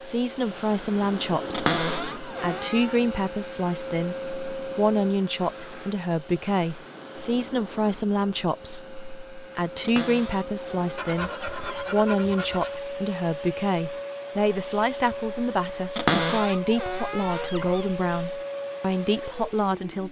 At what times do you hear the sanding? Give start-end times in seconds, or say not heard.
10.9-12.8.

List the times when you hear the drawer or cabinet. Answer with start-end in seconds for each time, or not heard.
1.5-3.0, 9.8-11.8, 15.9-17.9.